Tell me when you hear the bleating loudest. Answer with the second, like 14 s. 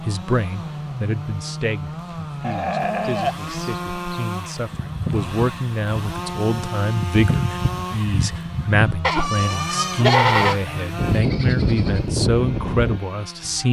10 s.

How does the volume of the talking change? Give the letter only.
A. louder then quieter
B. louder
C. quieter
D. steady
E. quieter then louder
B.